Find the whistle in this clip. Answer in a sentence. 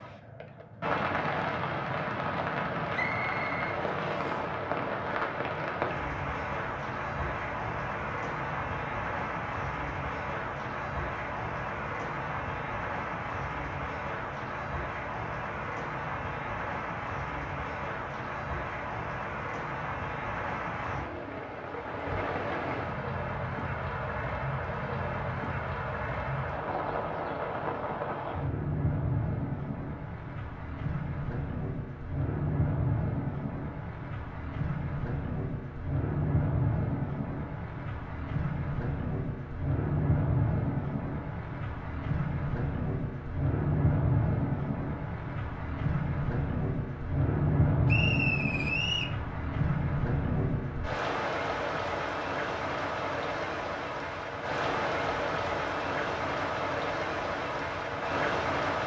The whistle can be heard from 2.9 to 4.4 s and from 47.9 to 49.1 s.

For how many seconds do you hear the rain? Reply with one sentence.
You can hear the rain for 59 seconds altogether.